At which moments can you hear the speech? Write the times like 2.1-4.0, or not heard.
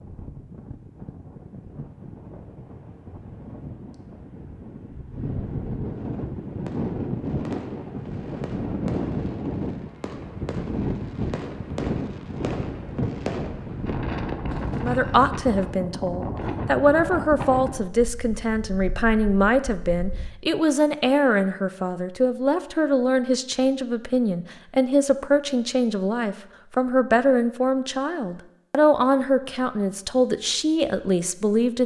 14.8-31.8.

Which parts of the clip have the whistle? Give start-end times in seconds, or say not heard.
not heard.